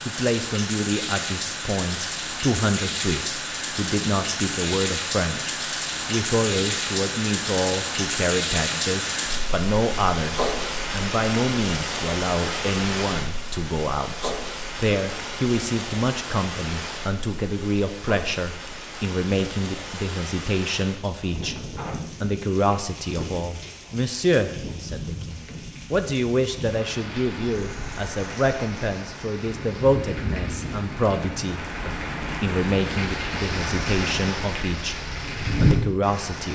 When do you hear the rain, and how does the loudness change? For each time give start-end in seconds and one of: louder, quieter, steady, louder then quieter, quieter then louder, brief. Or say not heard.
0.0-36.4 quieter then louder.